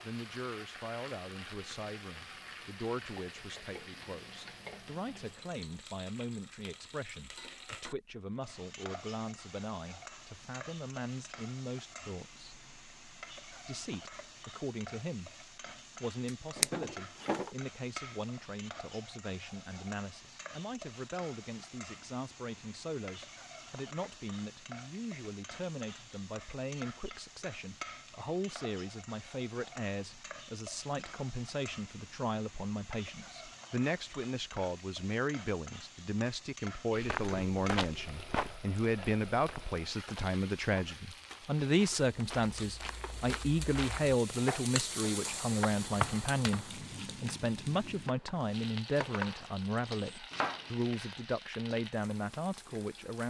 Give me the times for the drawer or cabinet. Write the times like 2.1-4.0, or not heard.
16.2-17.5.